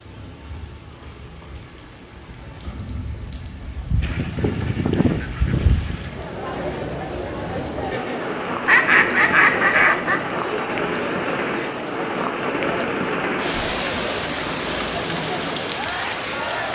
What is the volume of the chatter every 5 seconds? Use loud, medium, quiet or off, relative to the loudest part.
off, loud, loud, loud.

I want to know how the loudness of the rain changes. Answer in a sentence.
The volume of the rain goes up.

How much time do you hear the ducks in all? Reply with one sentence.
You can hear the ducks for 4 seconds altogether.